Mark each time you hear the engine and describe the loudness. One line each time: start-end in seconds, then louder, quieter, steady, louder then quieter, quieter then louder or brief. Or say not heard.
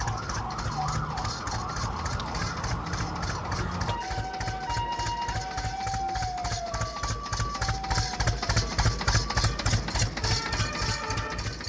0.0-11.6 louder.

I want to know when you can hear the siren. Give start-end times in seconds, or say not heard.
0.0-11.6.